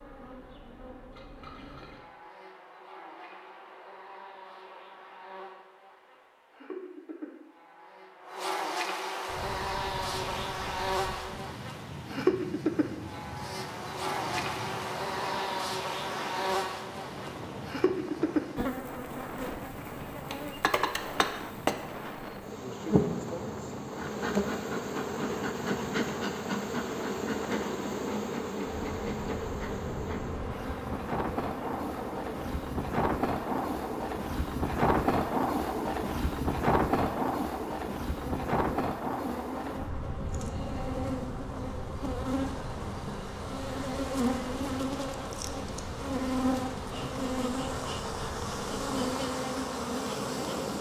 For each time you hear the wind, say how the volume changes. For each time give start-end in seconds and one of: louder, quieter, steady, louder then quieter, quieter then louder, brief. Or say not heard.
9.2-50.7 louder then quieter.